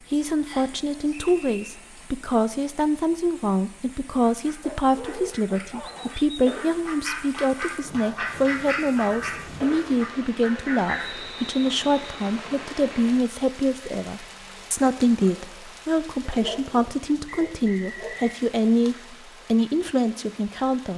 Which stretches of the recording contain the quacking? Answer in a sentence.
You can hear the quacking from 4.3 to 11.2 s.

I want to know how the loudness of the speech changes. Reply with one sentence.
The loudness of the speech stays about the same.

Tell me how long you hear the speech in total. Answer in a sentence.
The speech can be heard for 21 seconds in total.